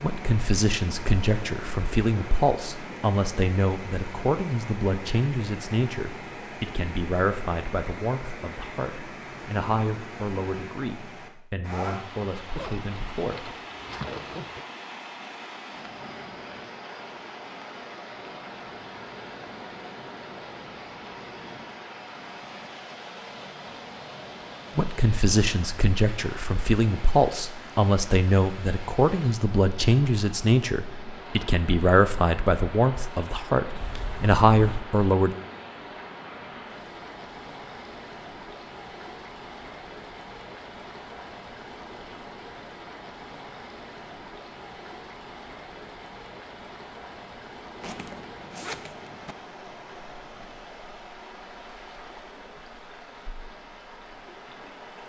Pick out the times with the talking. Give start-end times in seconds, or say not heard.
0.0-13.5, 24.8-35.4.